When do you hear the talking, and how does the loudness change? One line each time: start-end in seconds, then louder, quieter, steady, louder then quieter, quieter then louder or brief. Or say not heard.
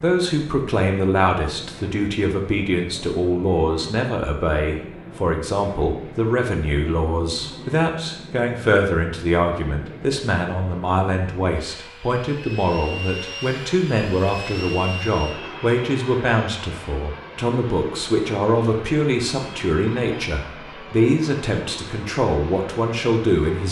0.0-23.6 steady.